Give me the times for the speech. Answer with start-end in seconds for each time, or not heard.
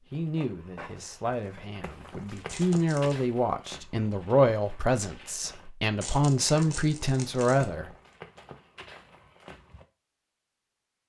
0.1-7.9.